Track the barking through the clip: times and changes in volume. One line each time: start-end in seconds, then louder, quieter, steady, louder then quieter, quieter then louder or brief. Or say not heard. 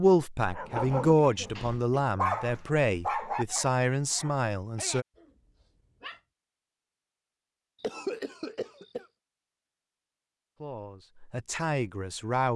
0.5-6.2 louder then quieter.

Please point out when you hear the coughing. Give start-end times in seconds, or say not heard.
0.7-2.0, 7.8-9.1.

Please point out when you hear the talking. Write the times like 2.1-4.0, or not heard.
0.0-5.0, 10.6-12.5.